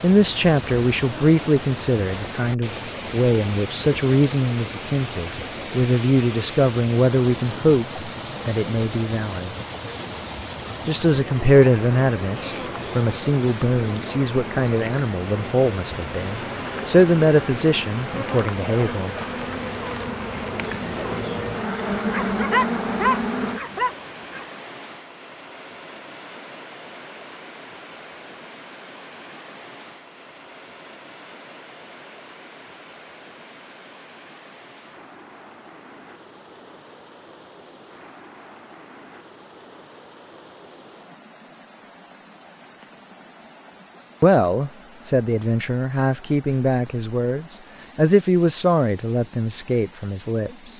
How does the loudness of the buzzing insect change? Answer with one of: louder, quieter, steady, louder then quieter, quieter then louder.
louder.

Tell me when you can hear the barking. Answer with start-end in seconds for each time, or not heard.
22.0-24.4.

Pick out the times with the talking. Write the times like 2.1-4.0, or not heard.
0.0-9.5, 10.8-19.1, 44.2-50.7.